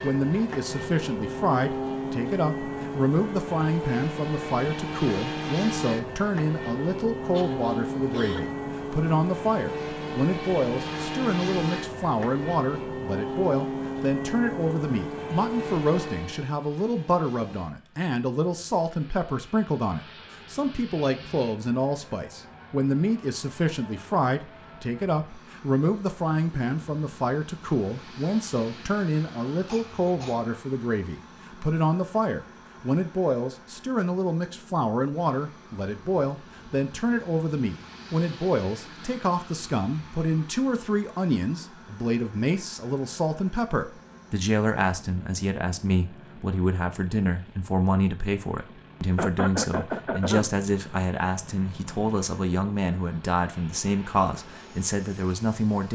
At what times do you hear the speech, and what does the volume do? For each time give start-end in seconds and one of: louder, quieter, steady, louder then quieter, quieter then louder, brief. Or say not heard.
0.0-55.9 steady.